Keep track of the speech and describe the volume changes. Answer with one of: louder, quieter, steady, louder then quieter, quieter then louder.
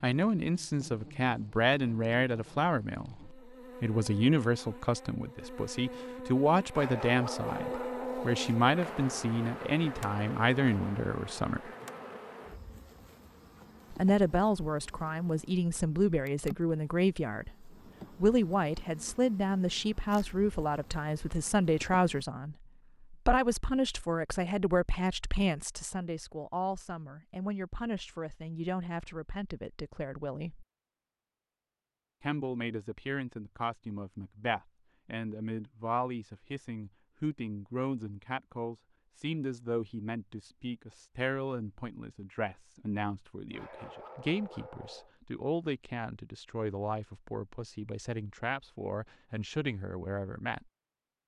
quieter.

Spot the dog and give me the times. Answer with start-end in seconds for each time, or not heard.
6.7-8.6, 43.5-45.1.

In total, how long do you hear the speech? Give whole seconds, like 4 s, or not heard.
47 s.